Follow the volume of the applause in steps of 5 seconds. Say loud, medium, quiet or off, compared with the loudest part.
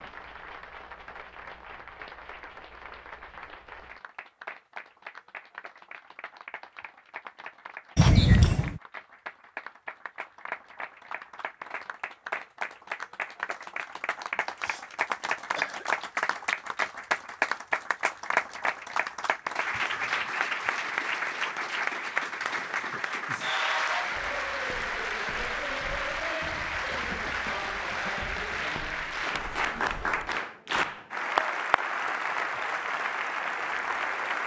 quiet, quiet, medium, loud, loud, loud, loud.